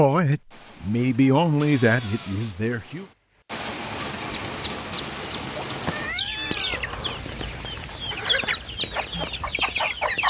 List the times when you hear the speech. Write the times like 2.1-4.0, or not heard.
0.0-3.0.